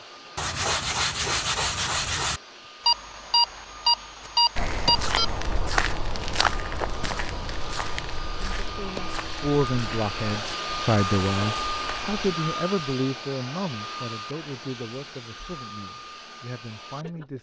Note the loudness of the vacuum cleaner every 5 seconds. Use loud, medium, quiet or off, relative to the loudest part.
quiet, medium, loud, medium.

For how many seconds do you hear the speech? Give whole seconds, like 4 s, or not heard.
9 s.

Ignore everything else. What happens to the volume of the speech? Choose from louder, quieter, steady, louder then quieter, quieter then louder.
quieter.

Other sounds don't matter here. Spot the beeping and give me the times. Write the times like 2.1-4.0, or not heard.
2.9-5.3.